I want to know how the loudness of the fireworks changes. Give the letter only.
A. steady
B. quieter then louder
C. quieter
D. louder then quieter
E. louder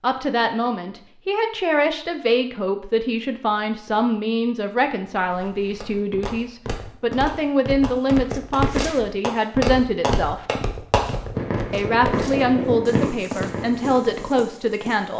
E.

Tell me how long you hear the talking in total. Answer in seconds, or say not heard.
14 s.